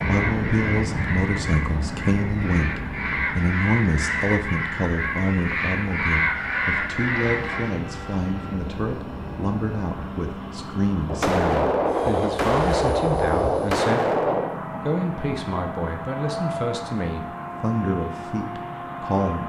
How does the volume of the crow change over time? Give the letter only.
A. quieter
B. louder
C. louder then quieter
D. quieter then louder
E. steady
B.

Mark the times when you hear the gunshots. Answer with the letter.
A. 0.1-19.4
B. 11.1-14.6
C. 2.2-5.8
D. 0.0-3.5
B.